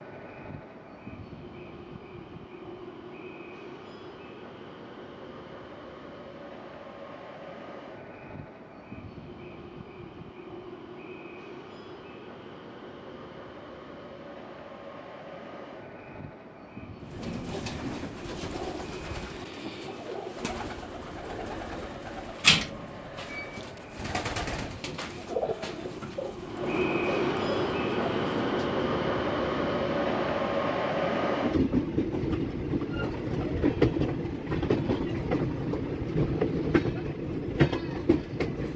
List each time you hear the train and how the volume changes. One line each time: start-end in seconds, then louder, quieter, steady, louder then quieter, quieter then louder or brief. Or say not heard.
0.0-38.7 louder.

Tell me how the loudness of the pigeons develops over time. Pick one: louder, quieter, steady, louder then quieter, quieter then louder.
louder then quieter.